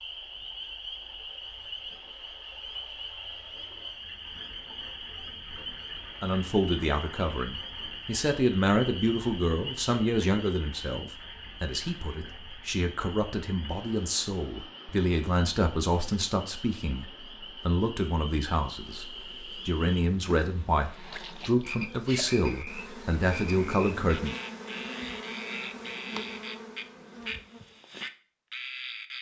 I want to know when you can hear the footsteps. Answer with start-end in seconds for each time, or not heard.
not heard.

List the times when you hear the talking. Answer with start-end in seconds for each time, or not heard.
6.2-24.4.